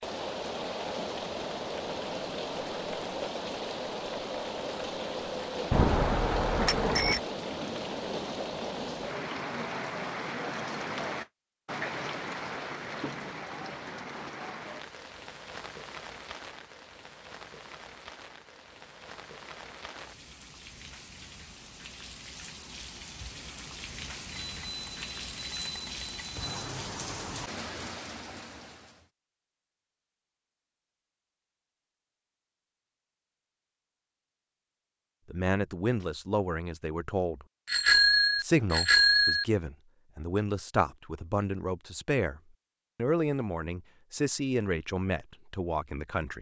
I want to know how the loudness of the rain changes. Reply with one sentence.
The loudness of the rain goes down, then up.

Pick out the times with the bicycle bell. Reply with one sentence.
The bicycle bell can be heard from 5.7 to 7.2 s, from 24.4 to 26.6 s and from 37.6 to 39.5 s.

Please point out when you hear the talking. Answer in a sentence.
The talking can be heard from 35.3 to 37.5 s and from 38.4 to 46.3 s.